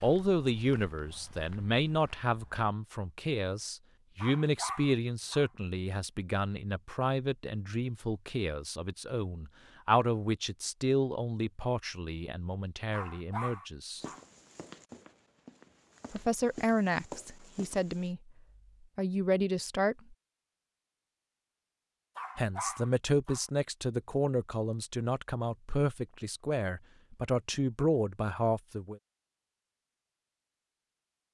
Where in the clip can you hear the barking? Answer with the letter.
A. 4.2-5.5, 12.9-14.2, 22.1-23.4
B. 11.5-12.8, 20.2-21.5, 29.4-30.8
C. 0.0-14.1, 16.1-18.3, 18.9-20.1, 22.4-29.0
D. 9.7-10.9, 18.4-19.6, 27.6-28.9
A.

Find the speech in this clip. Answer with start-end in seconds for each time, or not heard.
0.0-14.1, 16.1-18.3, 18.9-20.1, 22.4-29.0.